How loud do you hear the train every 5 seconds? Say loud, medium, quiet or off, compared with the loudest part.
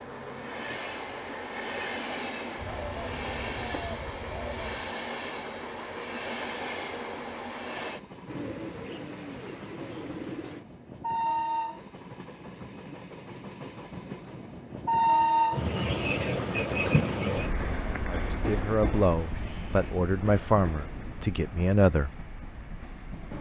medium, medium, medium, loud, quiet.